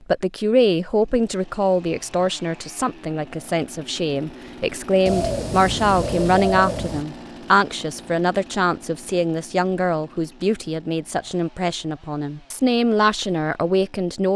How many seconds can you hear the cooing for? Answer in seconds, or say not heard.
2 s.